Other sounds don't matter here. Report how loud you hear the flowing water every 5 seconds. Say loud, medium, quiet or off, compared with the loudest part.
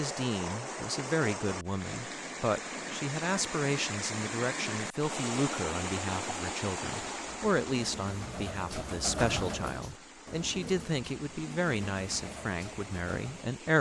loud, loud, medium.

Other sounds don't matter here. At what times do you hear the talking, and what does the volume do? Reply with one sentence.
The talking can be heard from 0.0 to 13.7 s, at a steady volume.